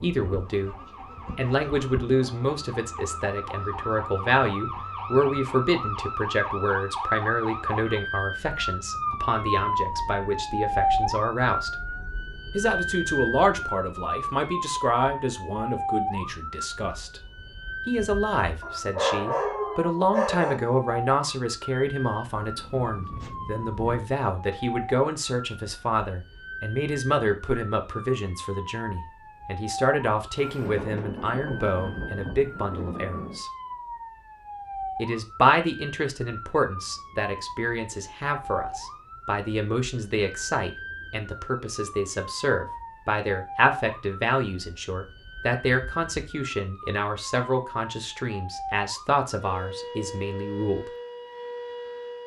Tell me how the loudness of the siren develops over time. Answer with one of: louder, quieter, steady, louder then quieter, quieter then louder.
quieter.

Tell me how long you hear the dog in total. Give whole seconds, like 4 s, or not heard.
2 s.